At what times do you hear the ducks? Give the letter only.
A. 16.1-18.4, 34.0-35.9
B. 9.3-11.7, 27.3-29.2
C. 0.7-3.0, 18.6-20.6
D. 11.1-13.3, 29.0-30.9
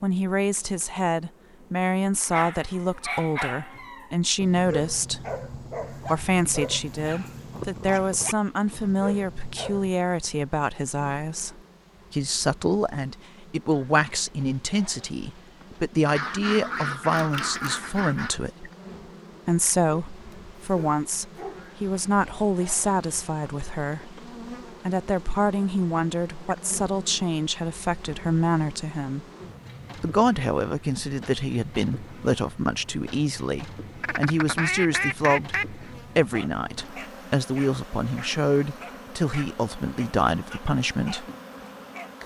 A.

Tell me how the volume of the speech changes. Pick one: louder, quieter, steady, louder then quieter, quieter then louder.
steady.